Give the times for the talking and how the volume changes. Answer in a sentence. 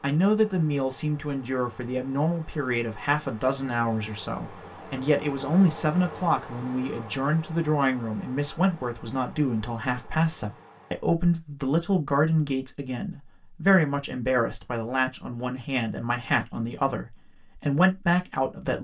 The talking can be heard from 0.0 to 18.7 s, at a steady volume.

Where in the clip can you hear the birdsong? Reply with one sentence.
You can't hear the birdsong here.